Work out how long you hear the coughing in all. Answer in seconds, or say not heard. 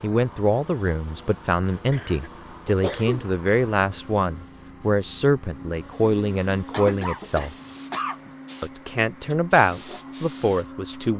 3 s.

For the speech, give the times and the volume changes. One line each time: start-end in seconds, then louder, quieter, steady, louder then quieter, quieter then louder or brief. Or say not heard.
0.0-7.5 steady
8.6-11.1 brief.